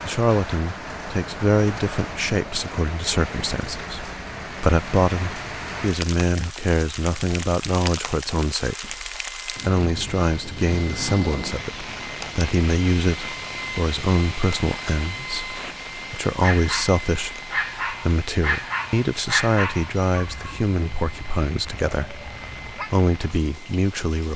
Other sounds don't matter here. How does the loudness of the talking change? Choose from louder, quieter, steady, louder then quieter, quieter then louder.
steady.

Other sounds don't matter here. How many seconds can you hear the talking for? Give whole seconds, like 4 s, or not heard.
24 s.